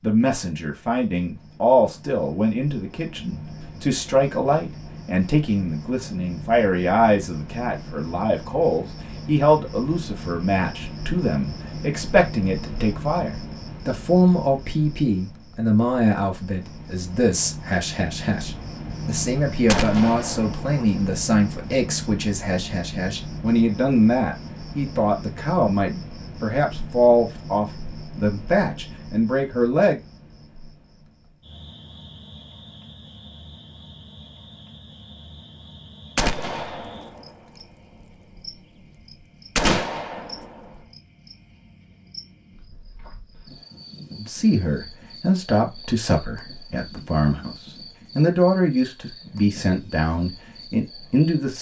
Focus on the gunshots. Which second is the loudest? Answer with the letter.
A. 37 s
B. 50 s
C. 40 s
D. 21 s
C.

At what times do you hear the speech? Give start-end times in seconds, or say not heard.
0.0-30.0, 44.1-51.5.